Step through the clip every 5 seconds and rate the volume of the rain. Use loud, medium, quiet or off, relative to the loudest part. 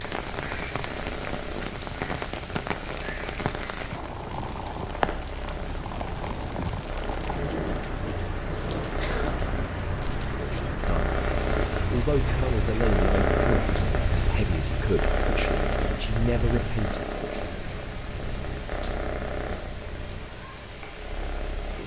loud, loud, loud, medium, medium.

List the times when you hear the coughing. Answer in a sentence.
The coughing can be heard from 8.9 to 9.4 s.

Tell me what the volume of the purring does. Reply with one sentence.
The volume of the purring goes up, then down.